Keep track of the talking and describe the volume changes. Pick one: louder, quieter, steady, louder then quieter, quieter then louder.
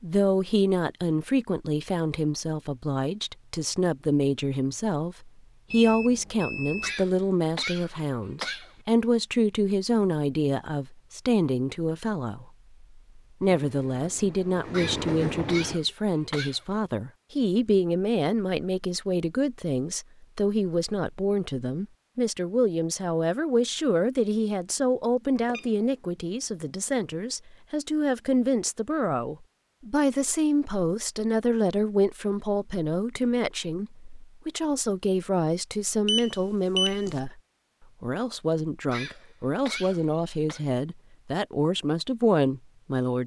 steady.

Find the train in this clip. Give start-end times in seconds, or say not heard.
13.4-15.8.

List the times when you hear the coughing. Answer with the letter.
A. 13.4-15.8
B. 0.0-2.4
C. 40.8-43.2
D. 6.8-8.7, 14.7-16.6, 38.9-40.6
D.